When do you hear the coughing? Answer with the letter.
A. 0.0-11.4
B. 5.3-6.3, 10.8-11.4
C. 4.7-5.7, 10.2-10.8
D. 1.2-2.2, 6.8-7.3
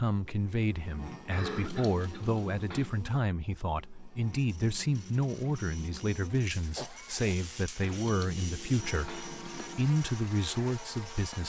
D.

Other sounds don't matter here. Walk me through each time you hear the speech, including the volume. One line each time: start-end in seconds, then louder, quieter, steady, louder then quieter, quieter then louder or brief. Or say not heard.
0.0-11.4 steady.